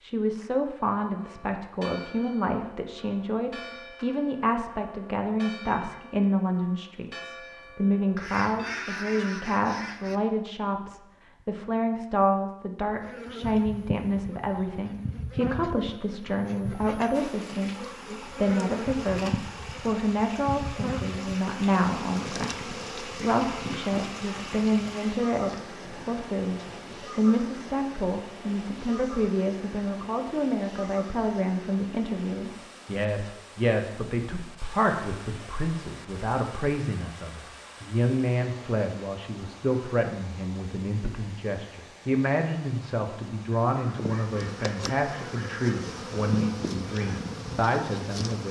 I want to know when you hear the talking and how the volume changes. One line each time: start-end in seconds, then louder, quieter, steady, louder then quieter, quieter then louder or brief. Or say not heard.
0.0-48.4 steady.